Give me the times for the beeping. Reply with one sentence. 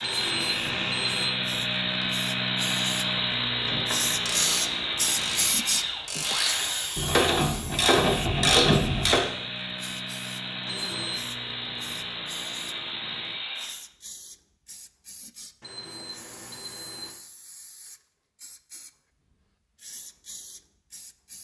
You can hear the beeping from 0.0 to 1.3 s, from 10.7 to 11.2 s and from 15.6 to 17.1 s.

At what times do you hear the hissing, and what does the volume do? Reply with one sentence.
You can hear the hissing from 0.1 to 21.3 s, getting quieter.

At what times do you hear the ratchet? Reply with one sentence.
The ratchet can be heard from 3.6 to 9.2 s.